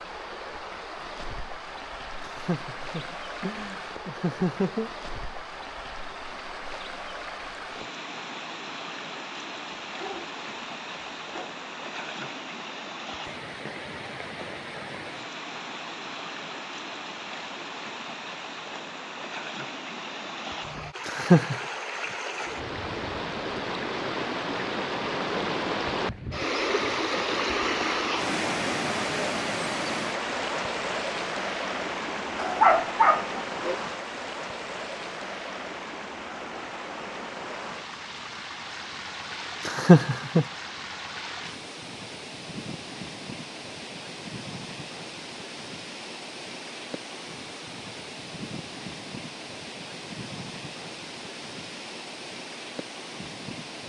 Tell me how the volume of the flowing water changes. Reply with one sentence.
The volume of the flowing water goes up, then down.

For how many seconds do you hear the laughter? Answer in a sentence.
You can hear the laughter for 4 seconds altogether.